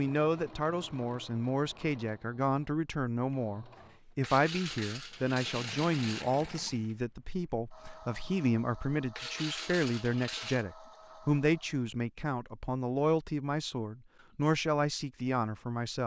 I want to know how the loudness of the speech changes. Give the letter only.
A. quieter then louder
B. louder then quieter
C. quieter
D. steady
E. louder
D.